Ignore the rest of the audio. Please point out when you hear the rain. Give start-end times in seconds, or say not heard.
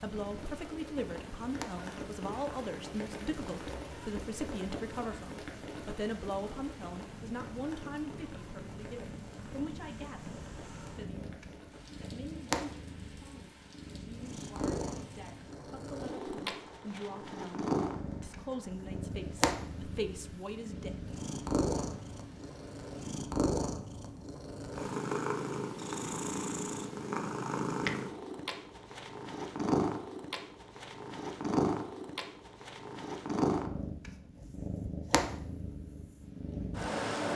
0.0-23.2.